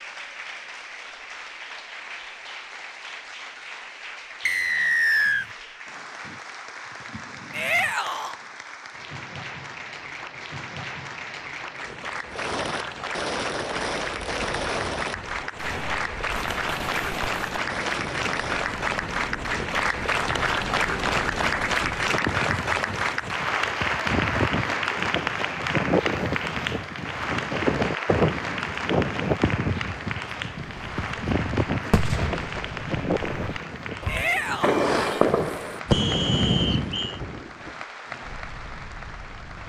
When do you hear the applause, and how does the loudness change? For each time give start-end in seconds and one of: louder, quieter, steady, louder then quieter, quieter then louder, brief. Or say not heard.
0.0-39.6 louder then quieter.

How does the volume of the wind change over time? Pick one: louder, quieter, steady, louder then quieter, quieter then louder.
louder then quieter.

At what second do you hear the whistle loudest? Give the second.
5 s.